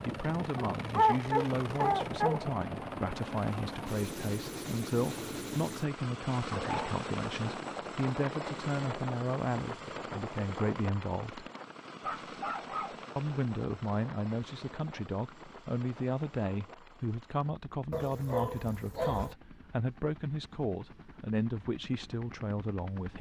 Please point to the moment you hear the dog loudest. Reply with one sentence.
The volume of the dog peaks at 1 second.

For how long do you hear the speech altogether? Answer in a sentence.
You can hear the speech for 21 seconds altogether.